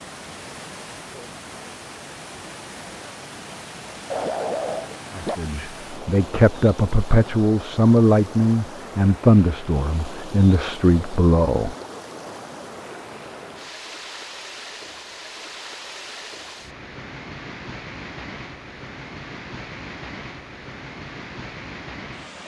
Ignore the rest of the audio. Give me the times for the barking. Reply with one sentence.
You can hear the barking from 4.1 to 5.3 s.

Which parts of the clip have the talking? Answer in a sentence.
You can hear the talking from 5.2 to 11.8 s.